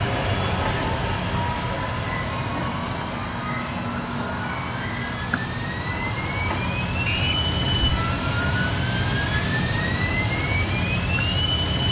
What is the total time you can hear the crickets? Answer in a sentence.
You can hear the crickets for 12 seconds altogether.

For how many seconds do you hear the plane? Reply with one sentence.
You can hear the plane for 12 seconds altogether.